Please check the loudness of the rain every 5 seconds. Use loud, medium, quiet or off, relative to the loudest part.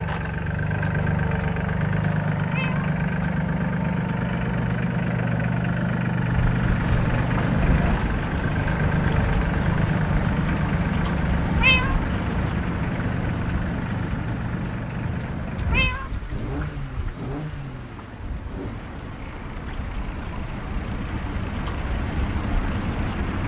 off, loud, loud, medium, loud.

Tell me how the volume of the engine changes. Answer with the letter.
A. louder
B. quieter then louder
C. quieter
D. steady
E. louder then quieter
C.